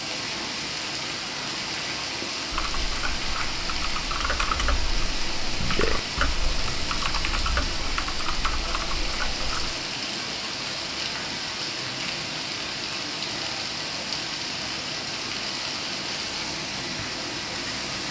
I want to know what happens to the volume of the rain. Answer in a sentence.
The loudness of the rain stays about the same.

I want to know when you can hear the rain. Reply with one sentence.
The rain can be heard from 0.0 to 18.0 s.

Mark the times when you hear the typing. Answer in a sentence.
The typing can be heard from 2.5 to 9.8 s.